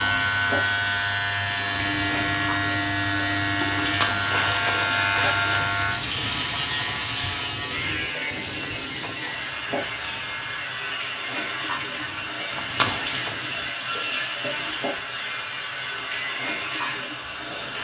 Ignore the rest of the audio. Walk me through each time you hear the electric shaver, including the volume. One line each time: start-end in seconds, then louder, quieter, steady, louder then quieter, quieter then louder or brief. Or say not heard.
0.0-17.7 quieter.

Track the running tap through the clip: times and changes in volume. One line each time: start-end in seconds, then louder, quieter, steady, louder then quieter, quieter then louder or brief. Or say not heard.
0.0-17.7 steady.